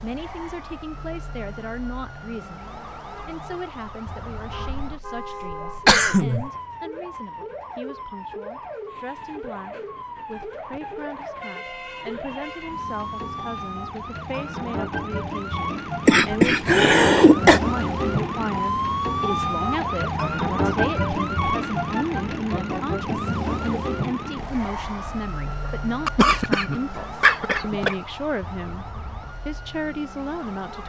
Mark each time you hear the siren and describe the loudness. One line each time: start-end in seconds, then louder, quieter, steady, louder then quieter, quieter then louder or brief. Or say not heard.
0.0-30.8 louder then quieter.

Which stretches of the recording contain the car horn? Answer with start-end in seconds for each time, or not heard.
4.5-5.8.